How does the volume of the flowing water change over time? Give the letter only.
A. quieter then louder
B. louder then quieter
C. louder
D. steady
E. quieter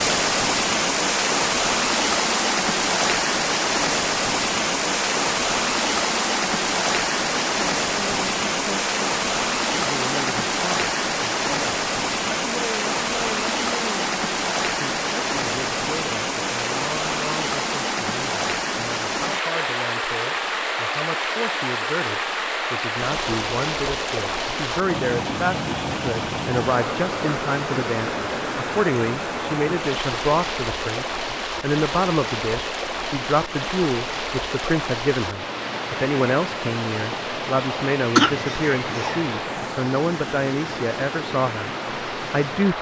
E.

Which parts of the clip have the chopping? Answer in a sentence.
You can't hear the chopping here.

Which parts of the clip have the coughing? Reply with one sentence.
You can hear the coughing from 38.1 to 39.2 s.